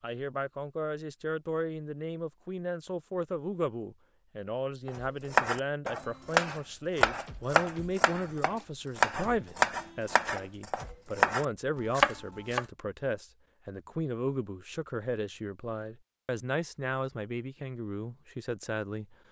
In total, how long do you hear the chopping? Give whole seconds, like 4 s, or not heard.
8 s.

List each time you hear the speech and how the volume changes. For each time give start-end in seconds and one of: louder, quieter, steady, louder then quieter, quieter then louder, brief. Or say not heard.
0.0-19.1 steady.